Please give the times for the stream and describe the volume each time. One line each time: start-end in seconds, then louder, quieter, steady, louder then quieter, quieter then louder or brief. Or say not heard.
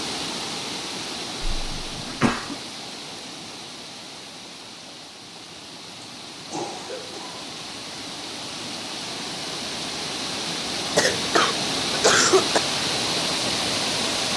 0.0-14.3 quieter then louder.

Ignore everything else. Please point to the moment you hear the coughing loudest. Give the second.
12 s.